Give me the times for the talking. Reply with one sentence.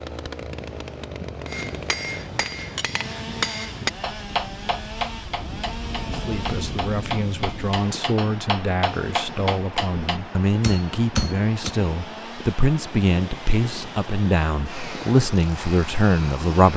The talking can be heard from 6.0 to 16.7 s.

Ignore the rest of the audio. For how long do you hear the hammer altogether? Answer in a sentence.
You can hear the hammer for 10 seconds altogether.